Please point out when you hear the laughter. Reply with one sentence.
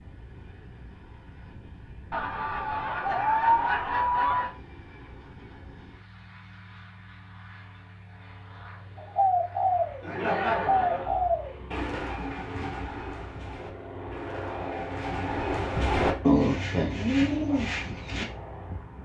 The laughter can be heard from 2.1 to 4.5 s and from 10.0 to 11.2 s.